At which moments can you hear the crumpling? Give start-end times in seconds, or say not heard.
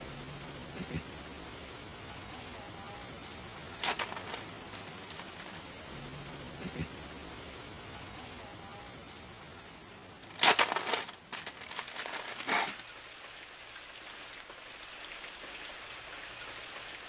3.8-5.7, 10.3-12.8.